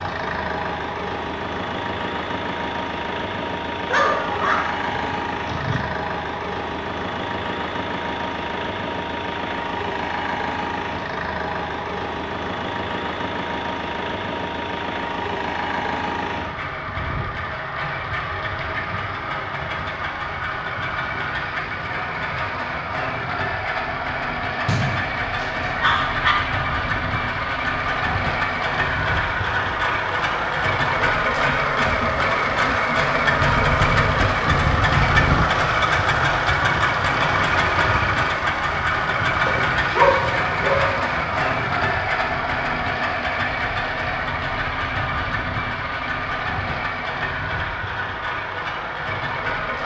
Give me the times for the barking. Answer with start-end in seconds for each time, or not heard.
3.9-5.8, 24.6-26.4, 39.5-40.9.